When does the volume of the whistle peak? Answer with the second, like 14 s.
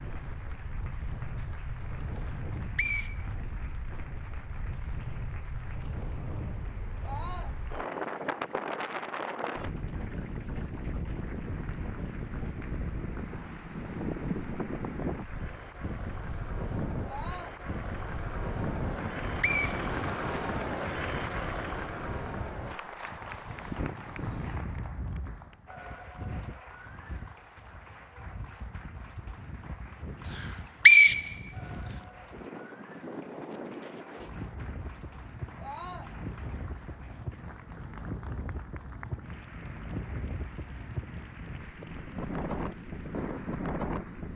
31 s.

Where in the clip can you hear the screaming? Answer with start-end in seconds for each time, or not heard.
7.0-7.5, 17.1-17.6, 35.5-36.1.